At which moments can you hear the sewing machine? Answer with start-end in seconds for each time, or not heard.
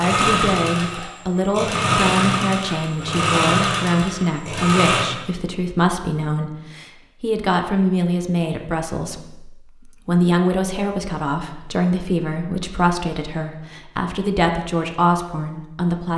0.0-5.1.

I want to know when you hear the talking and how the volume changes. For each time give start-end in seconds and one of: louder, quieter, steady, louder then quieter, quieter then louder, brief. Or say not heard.
0.0-16.1 steady.